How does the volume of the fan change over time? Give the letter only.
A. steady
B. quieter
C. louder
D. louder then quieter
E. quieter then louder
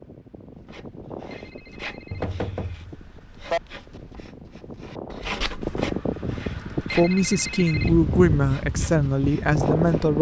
E.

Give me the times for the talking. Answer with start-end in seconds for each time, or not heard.
7.0-10.1.